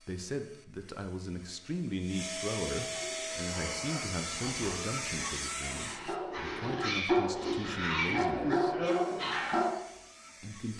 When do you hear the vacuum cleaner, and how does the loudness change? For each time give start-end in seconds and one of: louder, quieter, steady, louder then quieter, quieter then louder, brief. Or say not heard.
0.0-6.2 louder
8.8-10.7 brief.